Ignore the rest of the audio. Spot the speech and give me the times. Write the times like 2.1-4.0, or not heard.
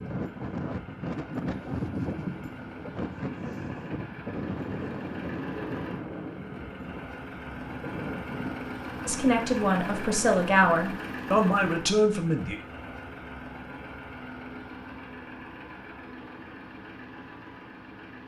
9.1-12.6.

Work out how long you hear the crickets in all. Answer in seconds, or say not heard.
not heard.